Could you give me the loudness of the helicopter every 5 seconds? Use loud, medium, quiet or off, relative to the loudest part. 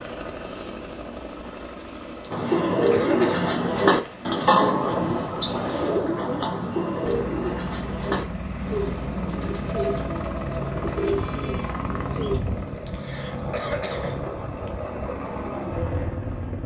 medium, loud, loud, loud.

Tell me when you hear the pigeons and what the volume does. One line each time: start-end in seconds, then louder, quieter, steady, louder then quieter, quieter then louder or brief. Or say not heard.
2.3-12.4 quieter.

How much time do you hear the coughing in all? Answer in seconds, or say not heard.
4 s.